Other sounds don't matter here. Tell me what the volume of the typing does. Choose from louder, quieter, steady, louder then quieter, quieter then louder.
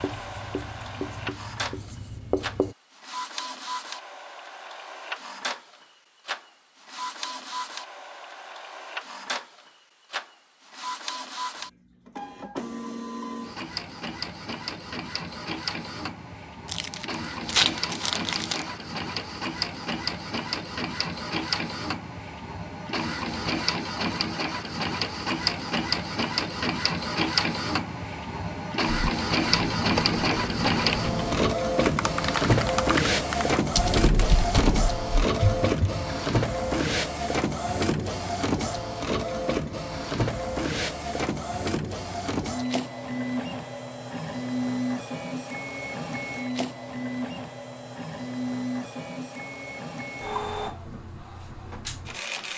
steady.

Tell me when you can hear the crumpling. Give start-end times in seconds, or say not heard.
16.6-18.6.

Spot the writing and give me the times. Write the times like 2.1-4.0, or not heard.
0.0-2.8.